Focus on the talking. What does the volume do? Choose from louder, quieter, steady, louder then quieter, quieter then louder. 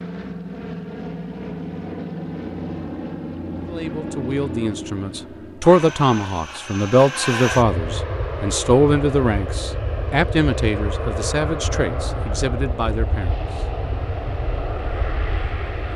quieter.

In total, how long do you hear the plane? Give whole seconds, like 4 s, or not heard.
16 s.